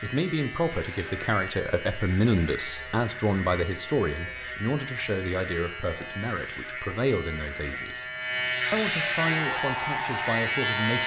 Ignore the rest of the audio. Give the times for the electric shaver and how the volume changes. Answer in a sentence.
The electric shaver can be heard from 0.0 to 11.0 s, getting louder.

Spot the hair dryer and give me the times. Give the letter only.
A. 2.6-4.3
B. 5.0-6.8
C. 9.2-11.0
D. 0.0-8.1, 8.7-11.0
C.